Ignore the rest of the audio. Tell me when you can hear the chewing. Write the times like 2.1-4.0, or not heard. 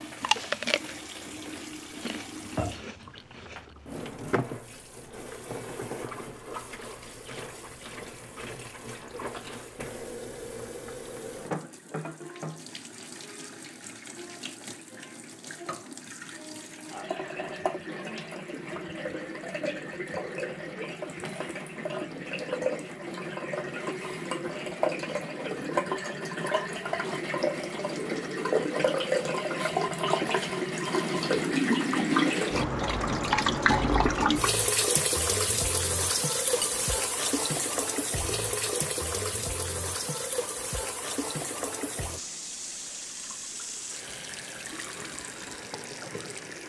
0.1-3.5.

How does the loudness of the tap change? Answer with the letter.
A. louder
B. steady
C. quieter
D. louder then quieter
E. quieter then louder
D.